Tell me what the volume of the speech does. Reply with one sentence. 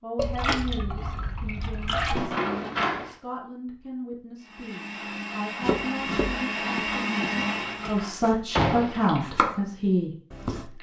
The loudness of the speech goes up.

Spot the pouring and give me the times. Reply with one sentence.
You can hear the pouring from 0.1 to 2.2 s and from 8.7 to 9.2 s.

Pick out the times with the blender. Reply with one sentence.
You can hear the blender from 4.3 to 8.1 s.